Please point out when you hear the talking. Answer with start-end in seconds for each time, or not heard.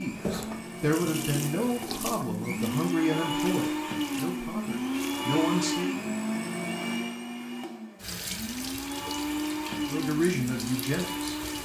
0.0-5.9, 9.8-11.4.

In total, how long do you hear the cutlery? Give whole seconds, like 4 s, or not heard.
not heard.